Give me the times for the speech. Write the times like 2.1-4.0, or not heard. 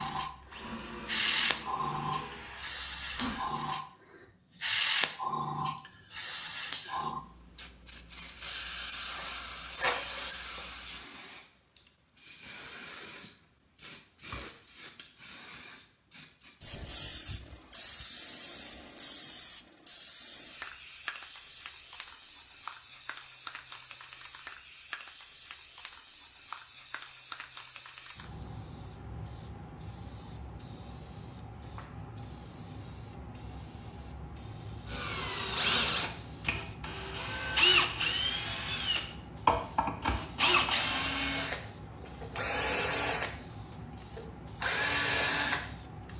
not heard.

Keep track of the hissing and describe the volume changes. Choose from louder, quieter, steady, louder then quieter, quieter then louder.
quieter.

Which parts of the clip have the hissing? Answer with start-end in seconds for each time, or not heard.
0.0-46.1.